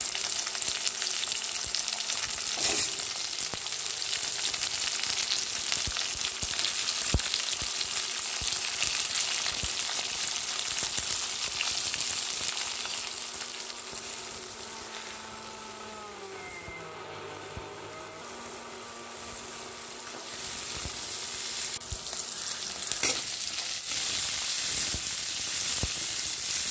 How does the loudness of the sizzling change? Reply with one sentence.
The loudness of the sizzling goes down, then up.